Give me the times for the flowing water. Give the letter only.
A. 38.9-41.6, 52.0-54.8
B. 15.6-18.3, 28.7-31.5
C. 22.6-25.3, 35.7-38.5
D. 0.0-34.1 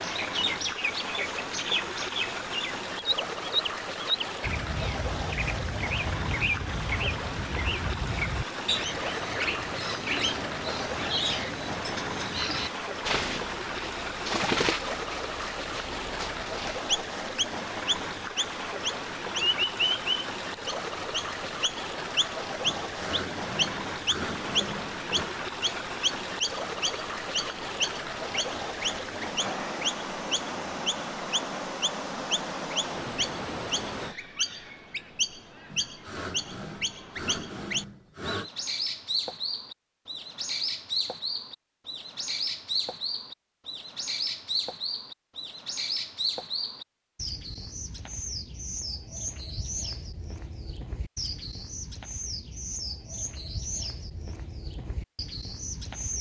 D.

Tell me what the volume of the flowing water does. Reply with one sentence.
The volume of the flowing water stays about the same.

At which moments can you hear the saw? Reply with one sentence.
You can hear the saw from 22.6 to 25.3 s and from 35.7 to 38.5 s.